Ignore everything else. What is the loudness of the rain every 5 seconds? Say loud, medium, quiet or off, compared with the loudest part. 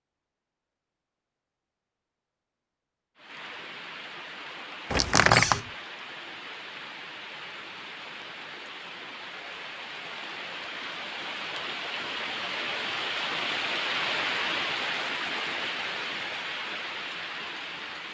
medium, medium, loud, loud.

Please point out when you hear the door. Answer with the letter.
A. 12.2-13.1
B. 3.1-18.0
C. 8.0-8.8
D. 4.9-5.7
D.